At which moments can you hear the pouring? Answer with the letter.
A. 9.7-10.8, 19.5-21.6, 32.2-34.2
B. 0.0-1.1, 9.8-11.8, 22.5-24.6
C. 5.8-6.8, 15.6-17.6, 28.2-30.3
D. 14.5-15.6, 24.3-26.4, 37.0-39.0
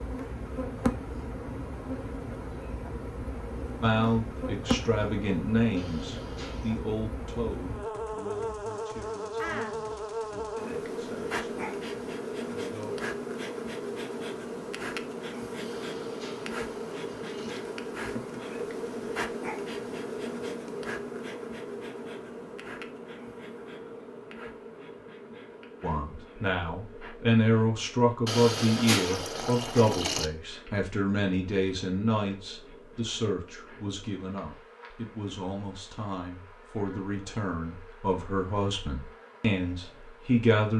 C.